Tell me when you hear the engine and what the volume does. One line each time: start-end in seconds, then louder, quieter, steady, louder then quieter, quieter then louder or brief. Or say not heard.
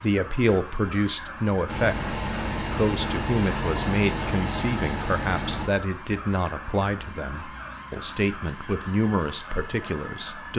1.6-5.7 steady.